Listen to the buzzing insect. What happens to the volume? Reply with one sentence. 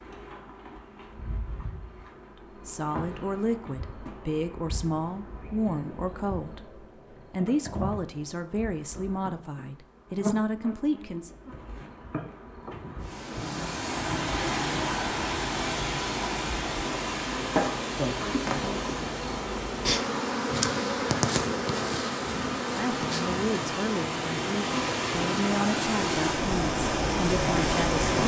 The volume of the buzzing insect goes up.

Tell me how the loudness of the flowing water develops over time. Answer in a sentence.
The volume of the flowing water goes down, then up.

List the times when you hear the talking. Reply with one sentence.
The talking can be heard from 2.6 to 11.3 s and from 22.7 to 28.1 s.